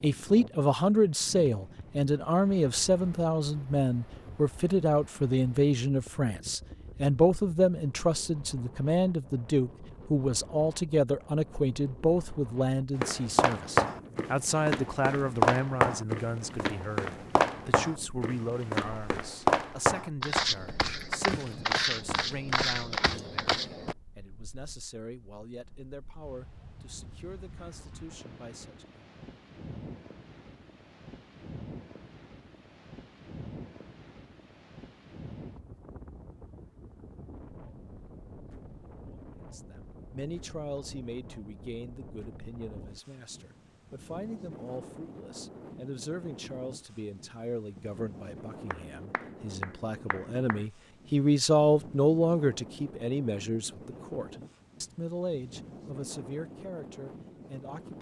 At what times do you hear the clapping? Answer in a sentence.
The clapping can be heard from 48.7 to 50.6 s.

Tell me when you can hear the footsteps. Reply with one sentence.
You can hear the footsteps from 13.0 to 23.9 s.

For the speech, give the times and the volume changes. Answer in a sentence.
The speech can be heard from 0.0 to 29.1 s, getting quieter; and from 39.4 to 57.9 s, getting louder then quieter.